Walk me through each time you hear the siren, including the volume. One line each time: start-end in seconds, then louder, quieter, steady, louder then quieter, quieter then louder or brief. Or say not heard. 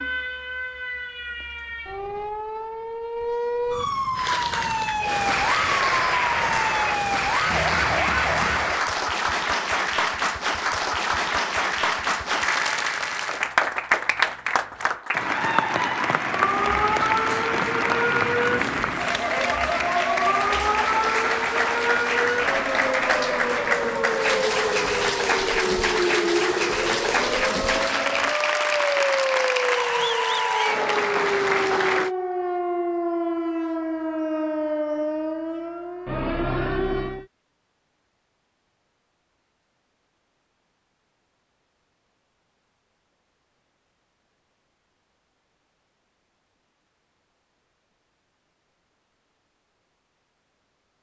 0.0-8.8 louder
16.2-37.2 steady.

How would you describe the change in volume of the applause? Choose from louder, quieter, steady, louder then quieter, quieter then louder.
steady.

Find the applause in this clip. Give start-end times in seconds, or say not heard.
4.2-32.1.